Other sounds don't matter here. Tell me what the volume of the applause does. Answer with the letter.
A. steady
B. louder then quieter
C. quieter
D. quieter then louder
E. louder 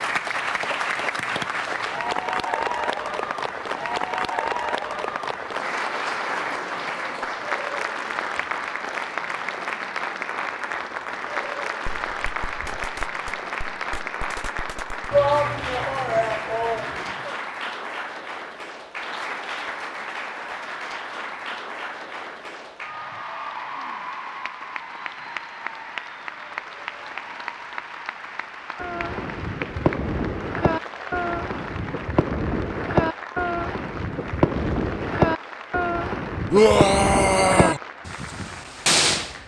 C.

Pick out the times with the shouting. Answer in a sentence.
You can hear the shouting from 15.1 to 17.3 s and from 36.5 to 37.8 s.